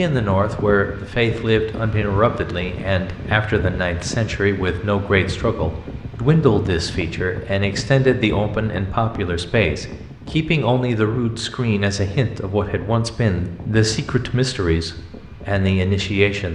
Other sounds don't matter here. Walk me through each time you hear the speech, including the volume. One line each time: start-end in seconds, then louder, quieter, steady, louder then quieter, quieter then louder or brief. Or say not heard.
0.0-16.4 steady.